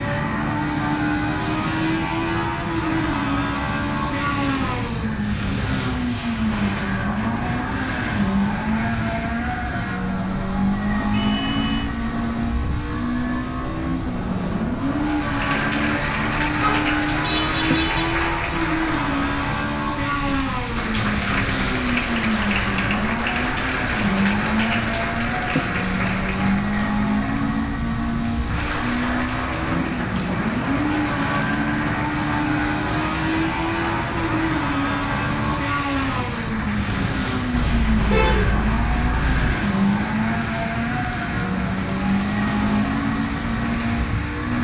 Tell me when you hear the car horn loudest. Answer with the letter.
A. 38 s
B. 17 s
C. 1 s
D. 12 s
A.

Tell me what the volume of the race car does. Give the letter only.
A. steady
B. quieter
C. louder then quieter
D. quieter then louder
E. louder
A.